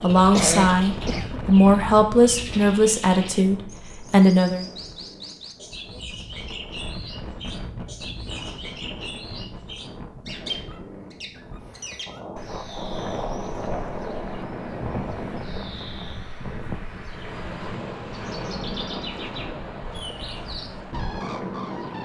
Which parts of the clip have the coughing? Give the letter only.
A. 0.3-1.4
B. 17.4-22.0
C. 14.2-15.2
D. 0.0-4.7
A.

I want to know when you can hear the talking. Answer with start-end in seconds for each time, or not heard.
0.0-4.7.